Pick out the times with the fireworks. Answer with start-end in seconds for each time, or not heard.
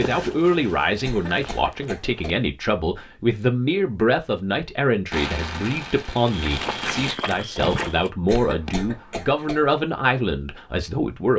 5.1-8.1.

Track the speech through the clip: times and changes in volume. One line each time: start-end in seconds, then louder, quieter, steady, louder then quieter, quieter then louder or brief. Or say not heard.
0.0-11.3 steady.